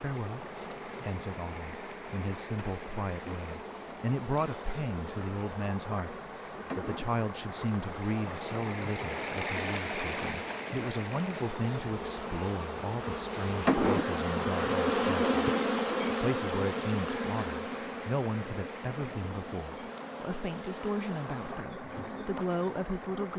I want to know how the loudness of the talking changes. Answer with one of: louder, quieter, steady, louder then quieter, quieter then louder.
steady.